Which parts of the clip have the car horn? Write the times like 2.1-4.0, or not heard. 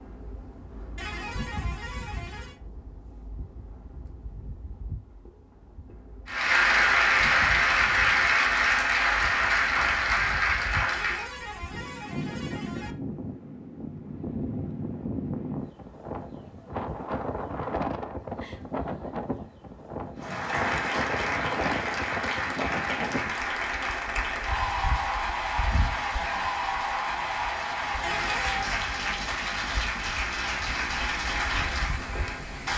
0.9-2.5, 10.9-12.9, 28.0-28.7.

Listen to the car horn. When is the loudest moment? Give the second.
28 s.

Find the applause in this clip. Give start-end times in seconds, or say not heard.
6.2-11.3, 20.1-32.7.